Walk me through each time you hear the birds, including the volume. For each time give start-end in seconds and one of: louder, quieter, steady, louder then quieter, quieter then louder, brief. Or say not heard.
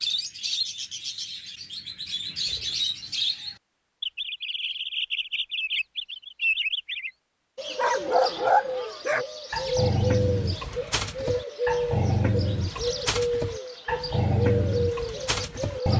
0.0-15.9 steady.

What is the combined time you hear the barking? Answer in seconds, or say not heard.
8 s.